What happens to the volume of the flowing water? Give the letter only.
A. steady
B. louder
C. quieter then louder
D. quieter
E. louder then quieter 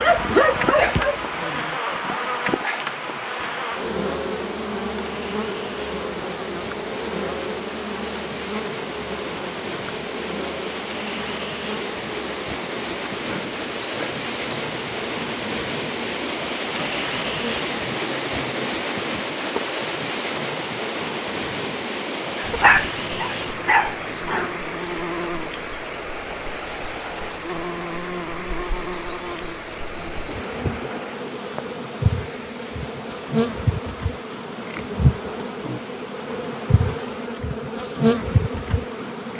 E.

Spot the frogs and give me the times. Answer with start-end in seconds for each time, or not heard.
not heard.